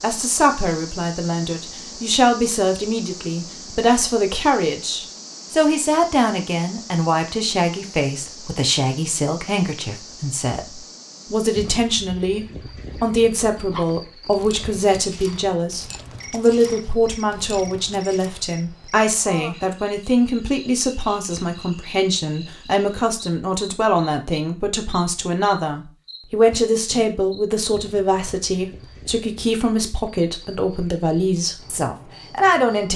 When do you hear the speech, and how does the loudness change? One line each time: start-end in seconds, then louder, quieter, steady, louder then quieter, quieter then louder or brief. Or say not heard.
0.0-32.9 steady.